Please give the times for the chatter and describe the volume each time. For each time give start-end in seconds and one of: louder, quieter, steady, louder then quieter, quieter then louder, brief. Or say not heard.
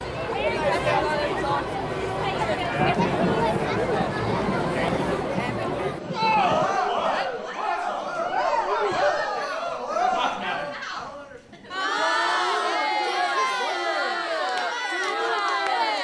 0.0-15.9 steady.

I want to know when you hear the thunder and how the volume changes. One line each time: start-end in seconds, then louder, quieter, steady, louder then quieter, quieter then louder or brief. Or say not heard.
2.8-6.8 quieter.